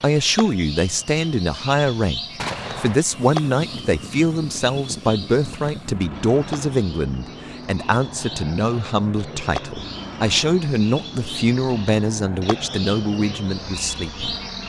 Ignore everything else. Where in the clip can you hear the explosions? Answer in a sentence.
You can hear the explosions from 2.4 to 3.0 s.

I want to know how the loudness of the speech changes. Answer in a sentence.
The loudness of the speech stays about the same.